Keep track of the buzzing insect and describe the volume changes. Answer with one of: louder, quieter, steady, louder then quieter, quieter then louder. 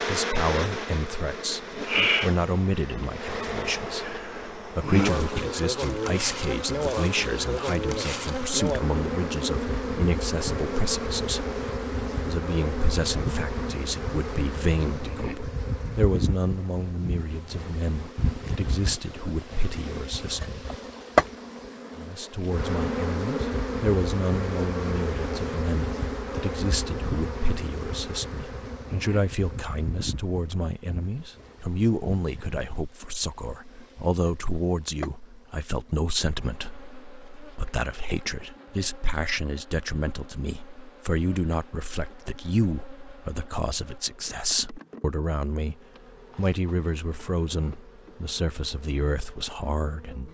quieter.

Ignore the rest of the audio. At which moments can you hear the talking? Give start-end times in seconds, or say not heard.
0.1-20.6, 21.9-50.2.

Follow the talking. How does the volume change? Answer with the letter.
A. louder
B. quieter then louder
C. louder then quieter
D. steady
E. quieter
D.